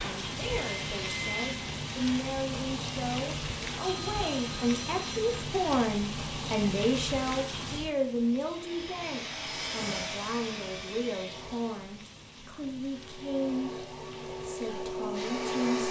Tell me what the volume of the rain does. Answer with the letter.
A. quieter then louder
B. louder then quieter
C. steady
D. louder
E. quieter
E.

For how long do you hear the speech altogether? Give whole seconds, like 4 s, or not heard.
16 s.